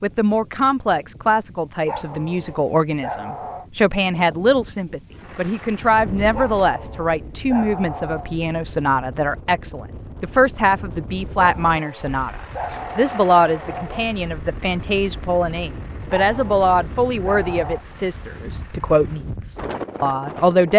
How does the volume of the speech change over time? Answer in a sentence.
The loudness of the speech stays about the same.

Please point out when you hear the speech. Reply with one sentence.
You can hear the speech from 0.0 to 20.7 s.